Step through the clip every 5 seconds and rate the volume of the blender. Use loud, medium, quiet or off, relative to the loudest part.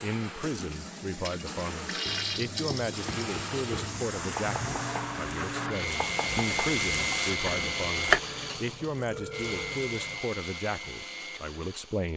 medium, loud, medium.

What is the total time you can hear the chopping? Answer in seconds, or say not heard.
6 s.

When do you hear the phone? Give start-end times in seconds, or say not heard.
9.1-9.8.